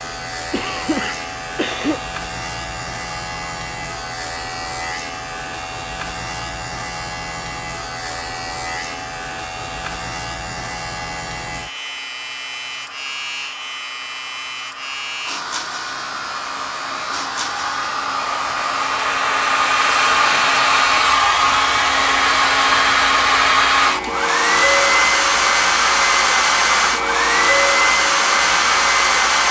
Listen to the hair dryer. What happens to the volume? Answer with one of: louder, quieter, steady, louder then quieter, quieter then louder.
louder.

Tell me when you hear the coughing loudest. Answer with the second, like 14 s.
2 s.